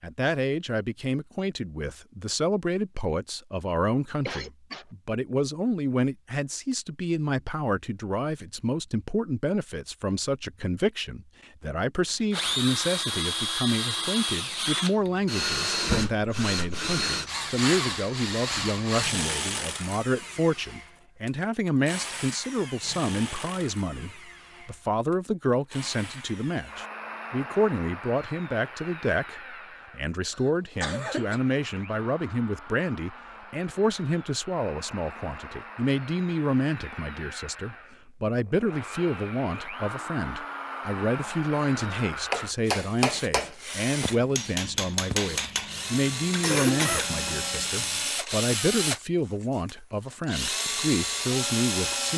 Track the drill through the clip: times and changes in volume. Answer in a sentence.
You can hear the drill from 12.1 to 52.1 s, getting quieter then louder.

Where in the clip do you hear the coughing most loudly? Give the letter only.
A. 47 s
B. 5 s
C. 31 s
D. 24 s
A.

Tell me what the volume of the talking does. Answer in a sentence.
The loudness of the talking stays about the same.